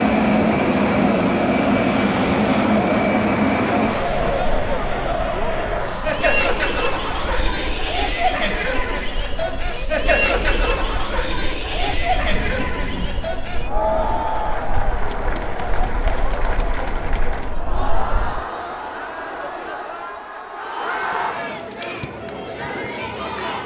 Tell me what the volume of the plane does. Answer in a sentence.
The loudness of the plane goes down.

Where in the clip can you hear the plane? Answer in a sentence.
You can hear the plane from 0.0 to 18.4 s.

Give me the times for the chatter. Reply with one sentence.
You can hear the chatter from 0.0 to 23.6 s.